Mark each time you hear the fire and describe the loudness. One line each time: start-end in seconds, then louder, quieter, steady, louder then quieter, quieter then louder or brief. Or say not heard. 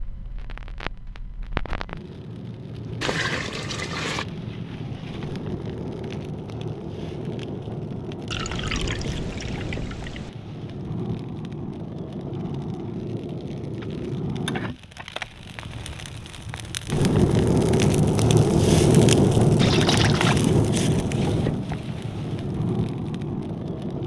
0.0-24.0 louder.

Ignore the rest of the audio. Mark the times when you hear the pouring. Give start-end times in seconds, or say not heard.
3.0-4.2, 8.3-10.3, 19.6-20.4.